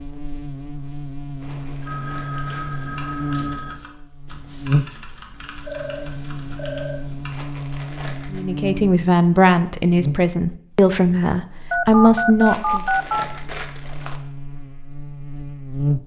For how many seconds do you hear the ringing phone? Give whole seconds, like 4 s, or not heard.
5 s.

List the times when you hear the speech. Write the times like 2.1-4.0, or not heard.
8.3-12.8.